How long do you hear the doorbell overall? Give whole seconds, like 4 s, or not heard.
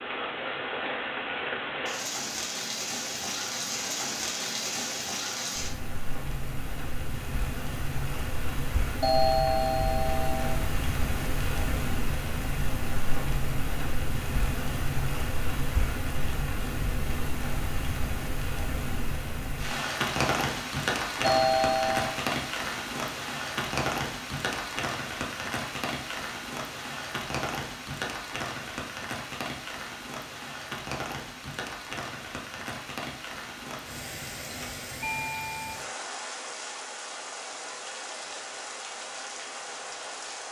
3 s.